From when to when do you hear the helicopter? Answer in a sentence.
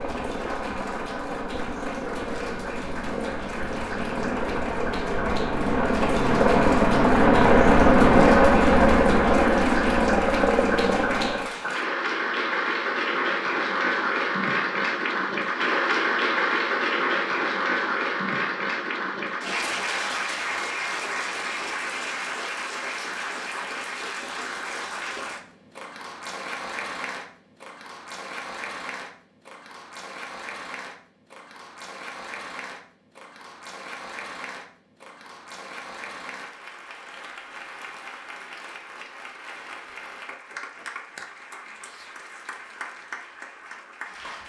The helicopter can be heard from 0.0 to 11.6 s.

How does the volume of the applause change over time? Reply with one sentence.
The loudness of the applause goes up, then down.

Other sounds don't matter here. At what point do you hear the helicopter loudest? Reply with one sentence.
The loudest moment of the helicopter is at 8 seconds.